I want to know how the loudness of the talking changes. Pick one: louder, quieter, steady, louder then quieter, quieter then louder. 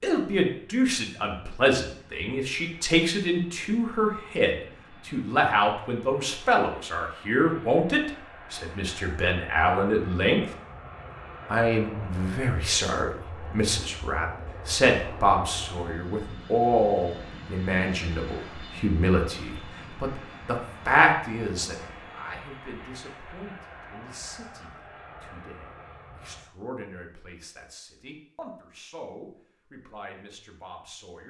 quieter.